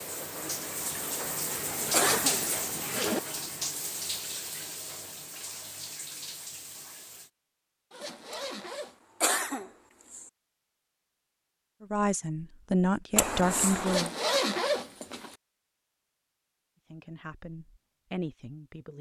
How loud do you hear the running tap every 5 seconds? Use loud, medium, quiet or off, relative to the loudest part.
loud, medium, off, off.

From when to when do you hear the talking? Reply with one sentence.
You can hear the talking from 11.8 to 14.1 s and from 16.9 to 18.9 s.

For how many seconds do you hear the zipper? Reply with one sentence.
You can hear the zipper for 4 seconds altogether.